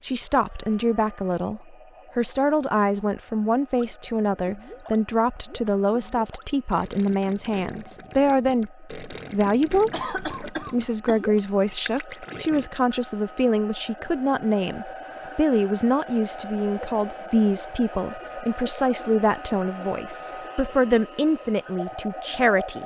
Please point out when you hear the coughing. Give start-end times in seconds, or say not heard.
9.9-11.2.